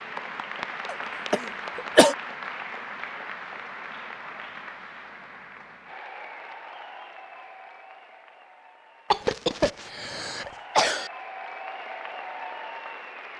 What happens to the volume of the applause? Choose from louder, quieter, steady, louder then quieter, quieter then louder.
quieter then louder.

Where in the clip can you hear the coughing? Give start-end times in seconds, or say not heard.
0.8-2.1, 9.1-11.1.